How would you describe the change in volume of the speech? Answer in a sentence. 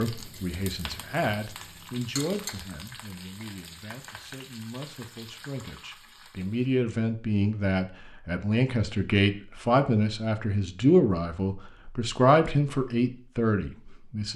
The volume of the speech goes down, then up.